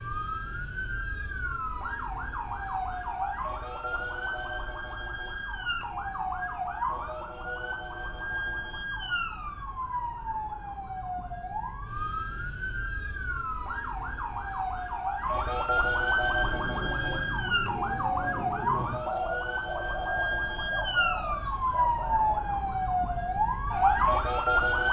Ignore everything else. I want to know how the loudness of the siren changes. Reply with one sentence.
The volume of the siren goes up.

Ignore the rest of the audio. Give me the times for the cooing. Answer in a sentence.
The cooing can be heard from 16.2 to 22.4 s.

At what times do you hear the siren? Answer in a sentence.
The siren can be heard from 0.0 to 24.8 s.